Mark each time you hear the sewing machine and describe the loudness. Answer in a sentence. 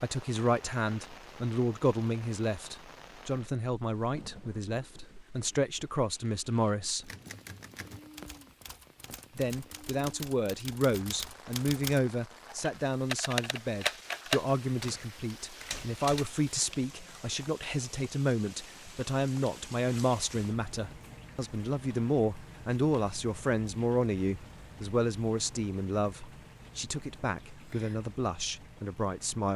The sewing machine can't be heard in this clip.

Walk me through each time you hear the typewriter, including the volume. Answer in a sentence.
You can hear the typewriter from 7.0 to 16.3 s, getting louder.